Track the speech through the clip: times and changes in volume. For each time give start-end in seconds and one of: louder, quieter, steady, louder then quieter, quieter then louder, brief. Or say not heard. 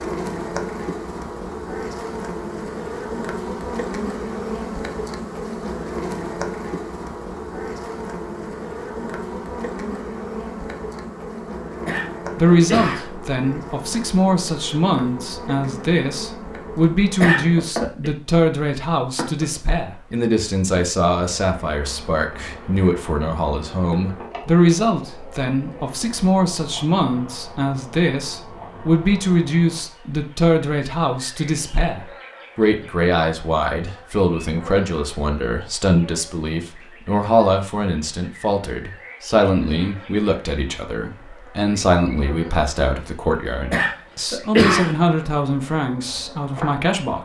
12.3-47.2 steady.